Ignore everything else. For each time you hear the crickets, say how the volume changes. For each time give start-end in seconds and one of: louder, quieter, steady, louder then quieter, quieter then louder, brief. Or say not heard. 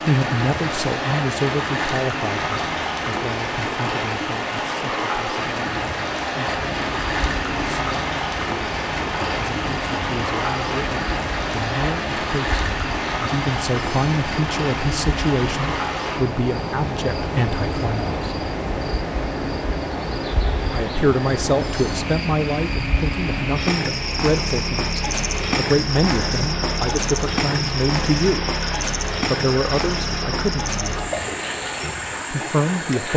6.7-33.1 louder.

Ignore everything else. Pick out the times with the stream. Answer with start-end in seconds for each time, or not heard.
0.0-33.1.